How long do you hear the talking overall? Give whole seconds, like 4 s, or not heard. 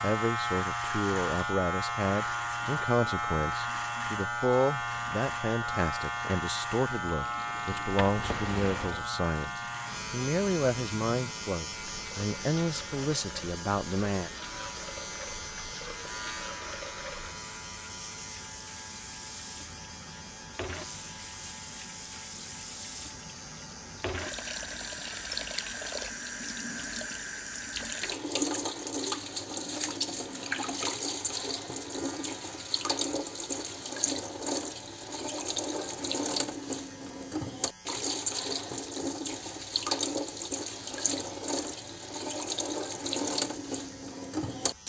14 s.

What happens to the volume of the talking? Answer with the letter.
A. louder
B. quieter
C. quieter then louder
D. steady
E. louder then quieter
D.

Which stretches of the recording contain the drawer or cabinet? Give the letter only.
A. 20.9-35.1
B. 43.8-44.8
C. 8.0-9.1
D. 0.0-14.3
C.